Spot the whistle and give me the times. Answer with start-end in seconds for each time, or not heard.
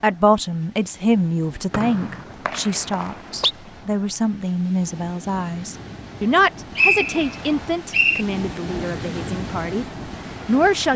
1.7-3.5, 6.8-8.2.